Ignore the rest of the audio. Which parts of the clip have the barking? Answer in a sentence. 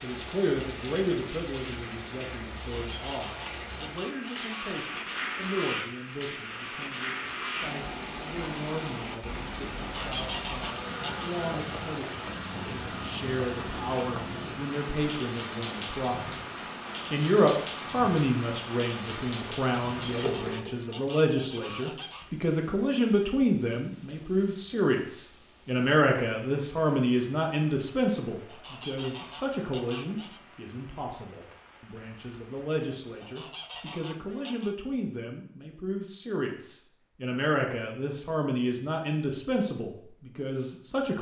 The barking can't be heard in this clip.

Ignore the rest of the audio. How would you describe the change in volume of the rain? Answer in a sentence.
The loudness of the rain goes down.